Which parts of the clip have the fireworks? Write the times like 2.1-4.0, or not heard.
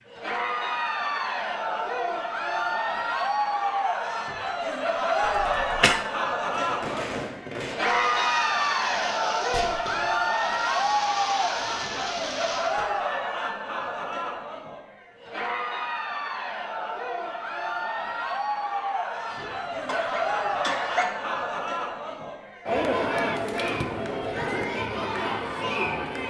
6.5-12.8.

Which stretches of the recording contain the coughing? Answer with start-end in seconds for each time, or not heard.
5.2-6.0, 19.3-21.2.